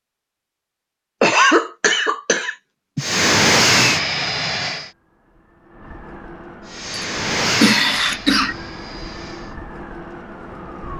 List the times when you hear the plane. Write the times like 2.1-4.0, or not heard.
3.0-4.9, 6.6-9.6.